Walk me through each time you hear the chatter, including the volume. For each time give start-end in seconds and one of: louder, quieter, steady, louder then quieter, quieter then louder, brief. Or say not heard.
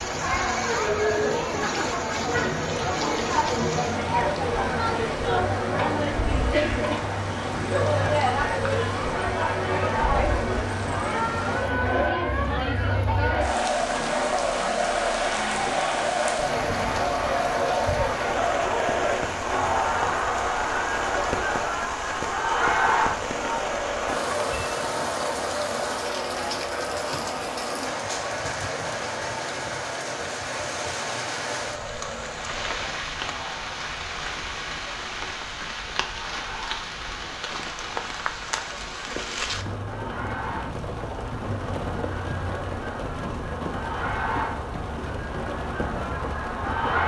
0.0-47.0 quieter.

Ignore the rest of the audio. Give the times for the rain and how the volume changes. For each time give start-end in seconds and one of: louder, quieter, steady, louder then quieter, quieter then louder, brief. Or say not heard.
0.0-47.0 steady.